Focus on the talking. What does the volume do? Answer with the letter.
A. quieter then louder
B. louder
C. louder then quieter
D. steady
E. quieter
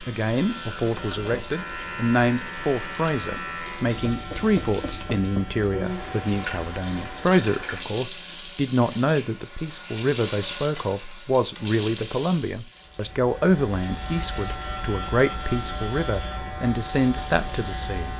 D.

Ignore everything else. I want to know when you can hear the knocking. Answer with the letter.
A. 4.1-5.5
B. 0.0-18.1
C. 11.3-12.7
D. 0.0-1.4
A.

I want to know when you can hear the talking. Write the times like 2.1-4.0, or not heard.
0.0-18.1.